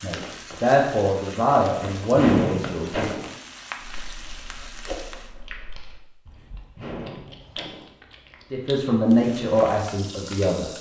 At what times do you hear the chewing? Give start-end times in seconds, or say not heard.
3.8-8.9.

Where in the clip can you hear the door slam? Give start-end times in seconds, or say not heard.
2.1-3.4, 6.8-8.0.